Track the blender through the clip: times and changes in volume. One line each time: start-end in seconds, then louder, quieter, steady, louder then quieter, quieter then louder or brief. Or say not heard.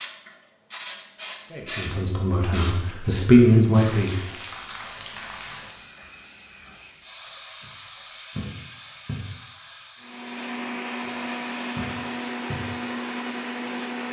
10.0-14.0 steady.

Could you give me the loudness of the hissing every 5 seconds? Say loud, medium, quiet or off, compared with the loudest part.
loud, medium, medium.